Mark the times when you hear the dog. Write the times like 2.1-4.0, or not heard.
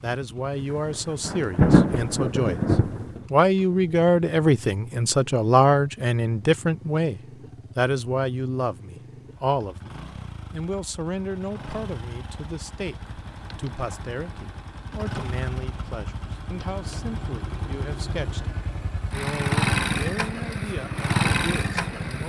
not heard.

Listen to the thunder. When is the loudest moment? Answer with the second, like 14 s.
2 s.